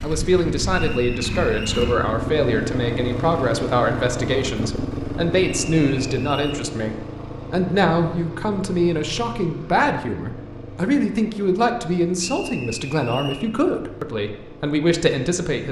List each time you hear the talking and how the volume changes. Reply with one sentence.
The talking can be heard from 0.0 to 15.6 s, at a steady volume.